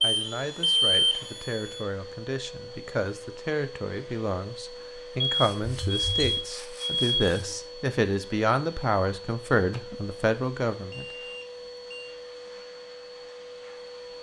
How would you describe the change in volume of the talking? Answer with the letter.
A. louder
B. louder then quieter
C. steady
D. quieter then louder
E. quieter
A.